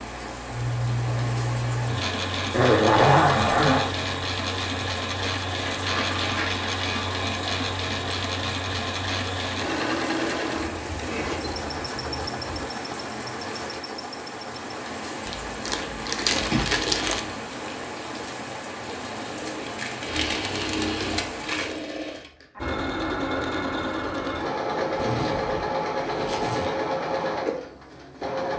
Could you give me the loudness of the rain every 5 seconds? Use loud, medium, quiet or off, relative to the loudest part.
loud, loud, loud, loud, loud, off.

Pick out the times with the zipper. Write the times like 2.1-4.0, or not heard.
2.5-4.0, 10.6-12.7, 24.9-26.8.